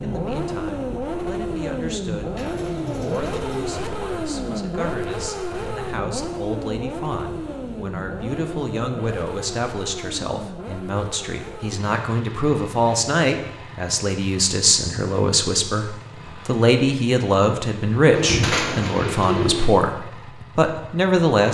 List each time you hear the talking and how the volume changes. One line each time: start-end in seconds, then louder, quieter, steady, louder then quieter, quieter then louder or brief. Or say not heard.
0.0-21.4 louder.